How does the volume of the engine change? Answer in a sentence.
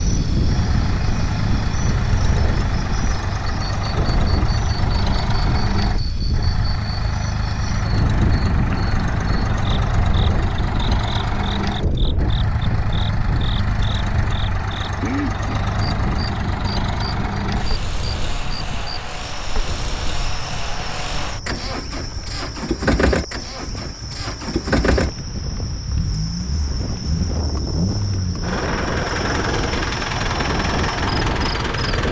The loudness of the engine stays about the same.